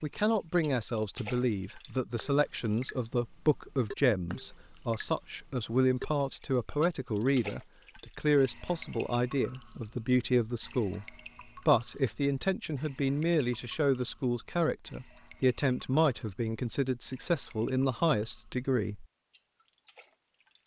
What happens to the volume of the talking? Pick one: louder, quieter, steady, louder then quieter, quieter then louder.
steady.